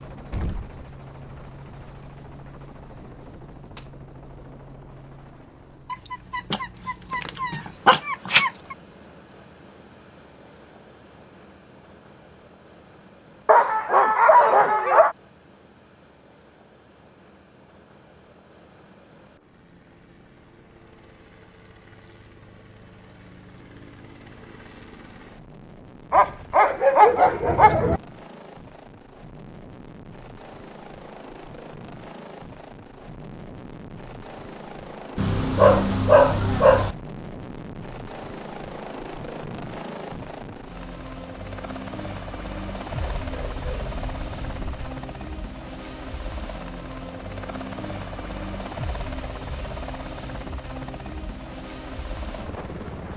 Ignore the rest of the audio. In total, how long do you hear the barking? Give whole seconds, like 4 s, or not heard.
10 s.